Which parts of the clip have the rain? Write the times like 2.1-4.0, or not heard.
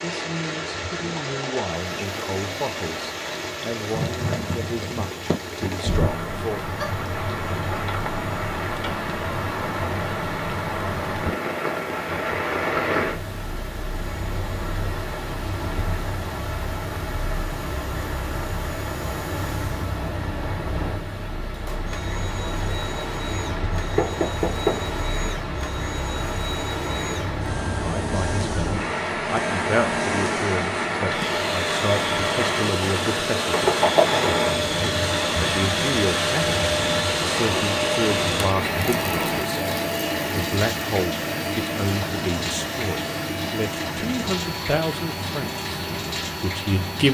0.0-47.0.